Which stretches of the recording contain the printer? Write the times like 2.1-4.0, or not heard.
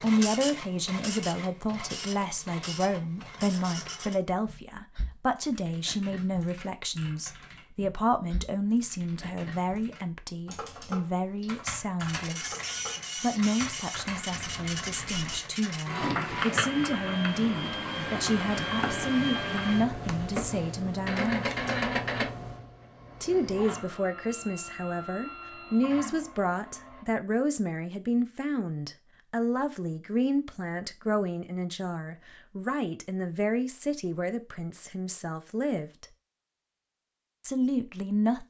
0.0-4.2, 12.1-27.1.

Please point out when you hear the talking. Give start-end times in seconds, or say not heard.
0.0-12.6, 13.2-21.4, 23.2-36.0, 37.4-38.4.